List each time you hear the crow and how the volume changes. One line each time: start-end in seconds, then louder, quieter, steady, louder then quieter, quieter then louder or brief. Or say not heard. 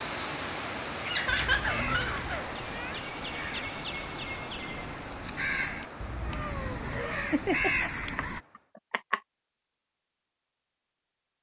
1.6-8.4 louder.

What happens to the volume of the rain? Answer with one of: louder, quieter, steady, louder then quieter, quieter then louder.
quieter.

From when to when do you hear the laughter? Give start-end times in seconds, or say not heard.
1.1-3.0, 6.9-9.2.